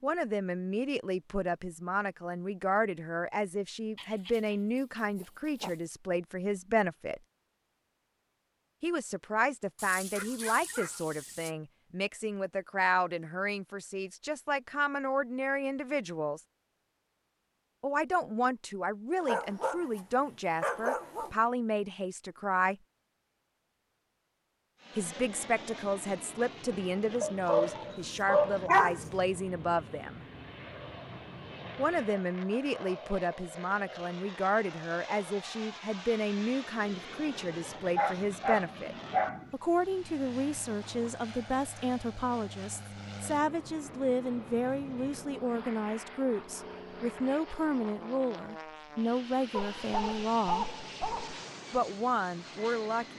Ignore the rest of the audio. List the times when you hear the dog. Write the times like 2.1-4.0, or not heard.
4.0-5.8, 9.8-11.5, 19.2-21.3, 27.2-29.1, 37.8-39.4, 49.5-51.5.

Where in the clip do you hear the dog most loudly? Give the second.
29 s.